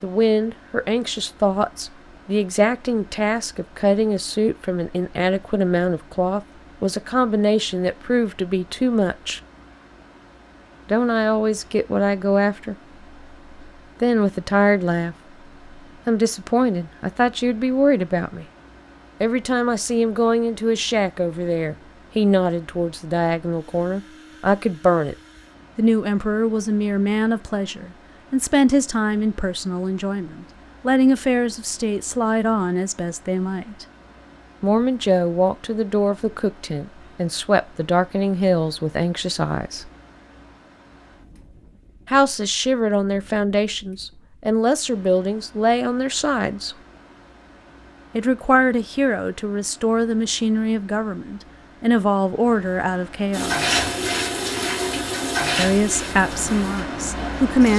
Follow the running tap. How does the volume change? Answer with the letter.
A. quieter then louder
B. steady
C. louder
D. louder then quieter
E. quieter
E.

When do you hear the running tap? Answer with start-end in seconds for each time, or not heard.
53.3-57.7.